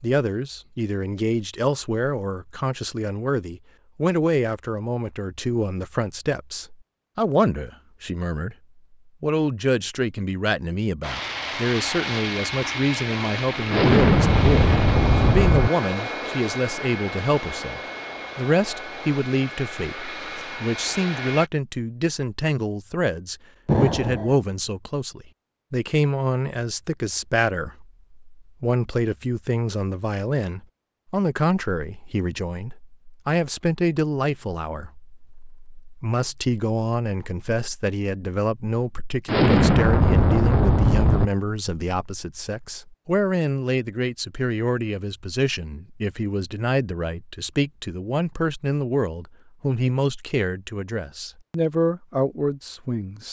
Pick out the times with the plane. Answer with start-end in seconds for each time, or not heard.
11.0-21.5.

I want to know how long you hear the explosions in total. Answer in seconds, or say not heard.
5 s.